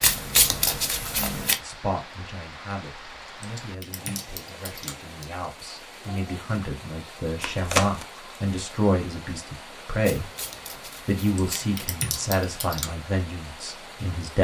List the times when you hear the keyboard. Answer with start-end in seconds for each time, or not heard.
3.4-5.3, 11.3-12.9.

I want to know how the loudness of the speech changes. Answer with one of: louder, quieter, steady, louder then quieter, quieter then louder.
louder.